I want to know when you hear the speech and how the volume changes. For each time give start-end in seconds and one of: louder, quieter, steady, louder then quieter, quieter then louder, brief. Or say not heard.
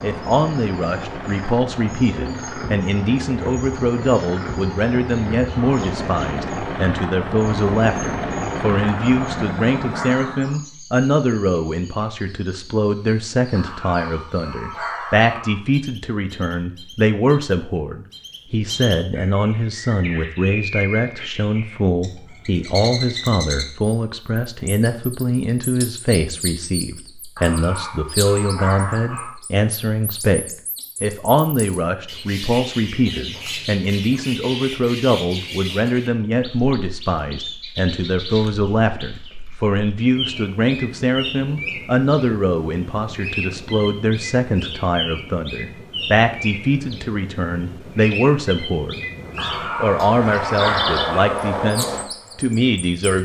0.0-53.1 steady.